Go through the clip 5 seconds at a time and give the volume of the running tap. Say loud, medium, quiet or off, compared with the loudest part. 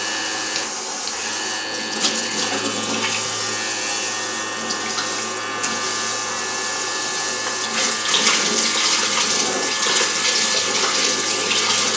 medium, loud, loud.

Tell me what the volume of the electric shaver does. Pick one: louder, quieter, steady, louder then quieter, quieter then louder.
steady.